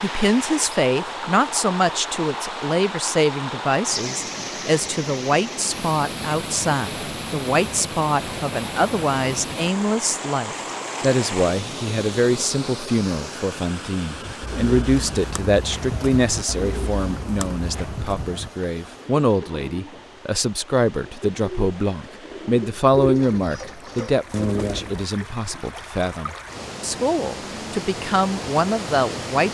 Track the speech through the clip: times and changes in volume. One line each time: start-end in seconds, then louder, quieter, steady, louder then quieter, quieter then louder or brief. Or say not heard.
0.0-29.4 steady.